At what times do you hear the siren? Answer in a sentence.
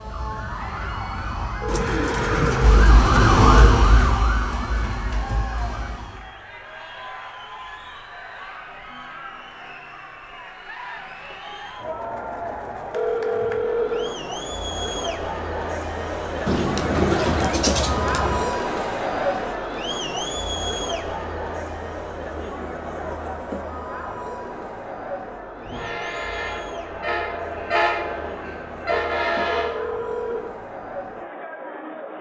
The siren can be heard from 0.0 to 6.3 s.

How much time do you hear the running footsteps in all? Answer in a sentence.
The running footsteps can't be heard in this clip.